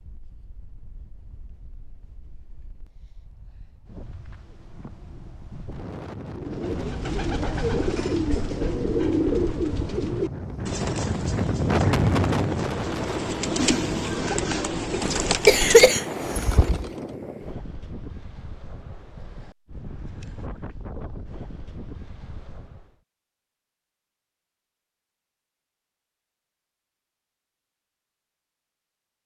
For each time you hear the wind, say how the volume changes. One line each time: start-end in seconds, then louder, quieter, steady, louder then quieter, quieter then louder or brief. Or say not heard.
0.0-22.9 louder then quieter.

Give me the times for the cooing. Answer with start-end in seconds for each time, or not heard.
6.3-17.0.